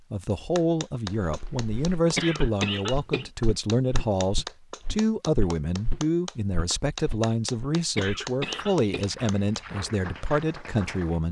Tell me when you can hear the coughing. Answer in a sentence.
You can hear the coughing from 2.1 to 3.3 s and from 8.0 to 9.1 s.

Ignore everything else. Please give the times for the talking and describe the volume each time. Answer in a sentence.
The talking can be heard from 0.1 to 11.2 s, at a steady volume.